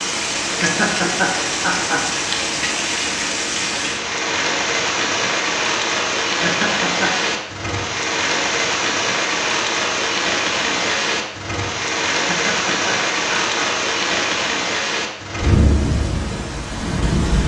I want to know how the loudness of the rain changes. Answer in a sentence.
The volume of the rain stays about the same.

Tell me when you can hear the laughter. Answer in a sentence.
The laughter can be heard from 0.6 to 2.0 s, from 6.4 to 7.3 s and from 12.2 to 13.7 s.